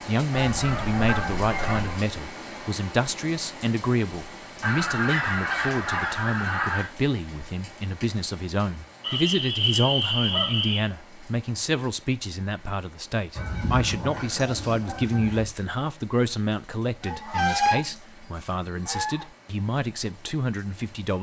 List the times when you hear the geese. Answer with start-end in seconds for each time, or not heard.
0.3-2.0, 4.6-6.8, 9.0-10.8, 13.3-15.4, 17.0-19.2.